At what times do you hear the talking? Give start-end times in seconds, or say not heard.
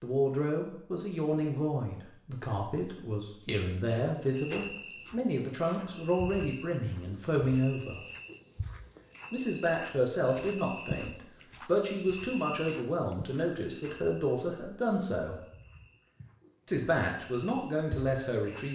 0.0-8.0, 9.3-15.4, 16.6-18.6.